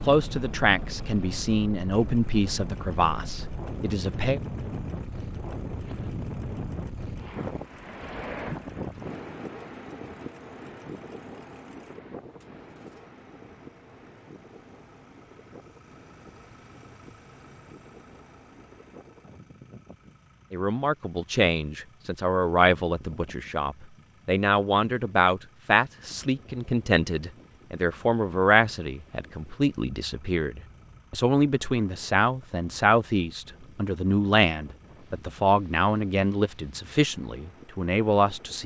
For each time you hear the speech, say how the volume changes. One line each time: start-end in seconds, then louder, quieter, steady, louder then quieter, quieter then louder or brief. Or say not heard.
0.0-4.4 quieter
20.5-38.6 steady.